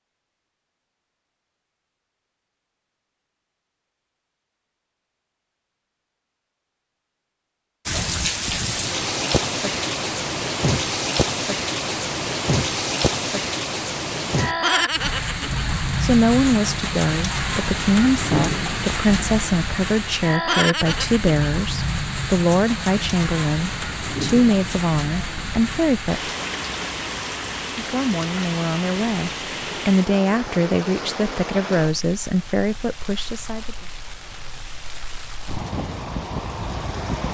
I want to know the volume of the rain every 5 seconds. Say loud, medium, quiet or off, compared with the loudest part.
off, loud, loud, loud, loud, medium, medium, medium.